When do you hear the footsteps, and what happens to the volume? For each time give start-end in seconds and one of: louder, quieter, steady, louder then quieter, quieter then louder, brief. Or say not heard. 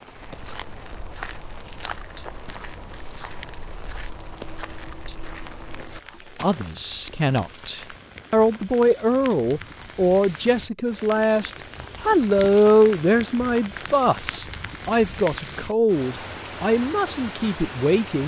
0.1-6.8 steady.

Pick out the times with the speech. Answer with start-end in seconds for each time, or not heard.
6.4-18.2.